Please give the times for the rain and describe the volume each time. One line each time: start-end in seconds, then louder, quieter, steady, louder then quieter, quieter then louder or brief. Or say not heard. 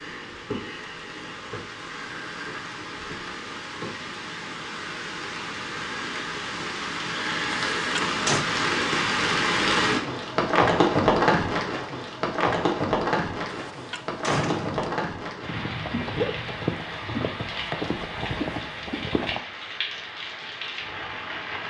0.0-21.6 louder then quieter.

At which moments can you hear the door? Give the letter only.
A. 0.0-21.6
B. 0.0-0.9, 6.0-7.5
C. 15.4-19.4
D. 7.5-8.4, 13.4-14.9
D.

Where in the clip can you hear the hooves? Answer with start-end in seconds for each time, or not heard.
15.4-19.4.